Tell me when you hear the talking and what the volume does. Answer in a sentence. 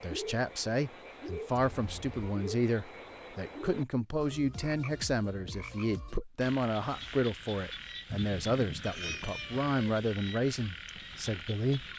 The talking can be heard from 0.0 to 11.8 s, at a steady volume.